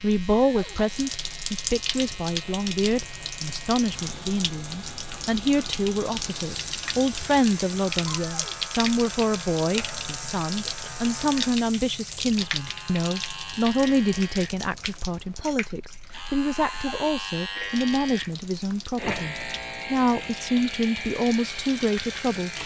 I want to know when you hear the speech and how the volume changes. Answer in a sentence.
You can hear the speech from 0.0 to 22.6 s, at a steady volume.